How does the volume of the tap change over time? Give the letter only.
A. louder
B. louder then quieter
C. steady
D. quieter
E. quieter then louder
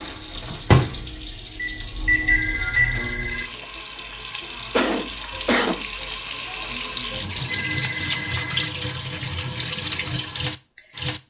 A.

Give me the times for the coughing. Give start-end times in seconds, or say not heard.
4.7-5.8.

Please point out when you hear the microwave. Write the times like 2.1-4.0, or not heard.
0.0-3.4.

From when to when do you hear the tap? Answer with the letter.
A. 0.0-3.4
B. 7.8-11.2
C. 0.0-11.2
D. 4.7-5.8
C.